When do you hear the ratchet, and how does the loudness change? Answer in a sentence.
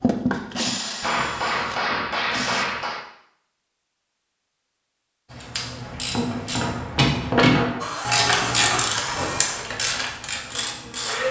The ratchet can be heard from 5.3 to 11.2 s, getting louder then quieter.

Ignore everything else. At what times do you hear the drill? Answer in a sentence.
You can hear the drill from 0.0 to 2.6 s and from 7.8 to 11.2 s.